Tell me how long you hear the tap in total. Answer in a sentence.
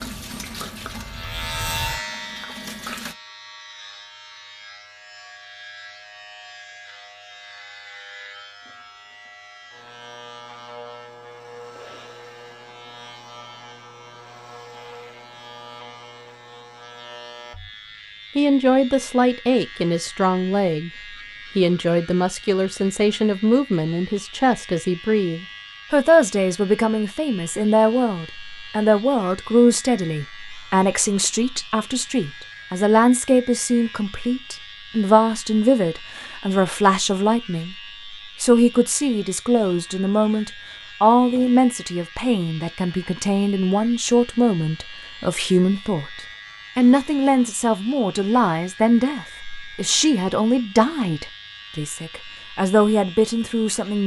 The tap can be heard for 3 seconds in total.